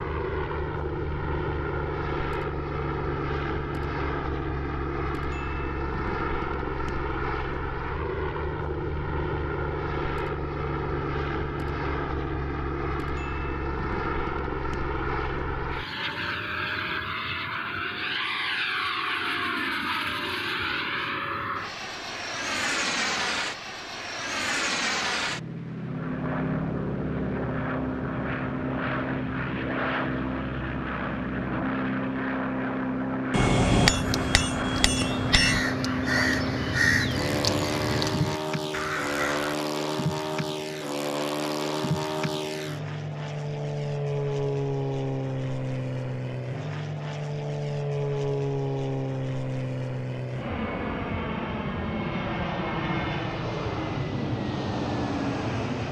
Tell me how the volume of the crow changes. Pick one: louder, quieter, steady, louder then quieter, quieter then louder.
louder then quieter.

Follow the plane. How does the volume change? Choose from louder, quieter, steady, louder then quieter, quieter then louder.
steady.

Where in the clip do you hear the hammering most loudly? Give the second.
34 s.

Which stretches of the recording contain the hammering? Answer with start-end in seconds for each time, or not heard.
33.3-35.6.